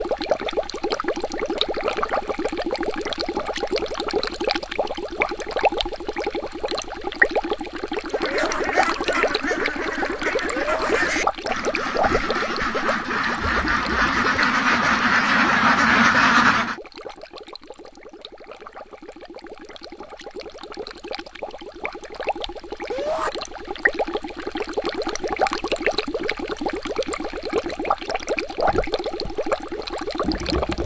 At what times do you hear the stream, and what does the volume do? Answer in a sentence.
The stream can be heard from 0.0 to 30.8 s, getting quieter then louder.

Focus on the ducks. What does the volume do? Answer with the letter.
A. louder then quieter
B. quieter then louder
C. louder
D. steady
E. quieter
C.